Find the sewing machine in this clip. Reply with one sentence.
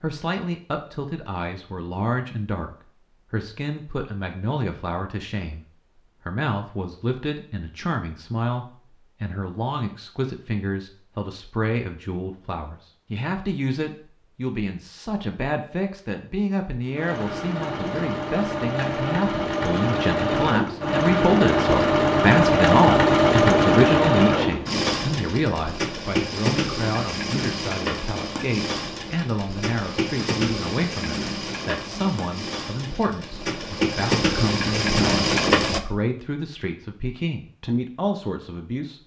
The sewing machine can be heard from 16.9 to 35.8 s.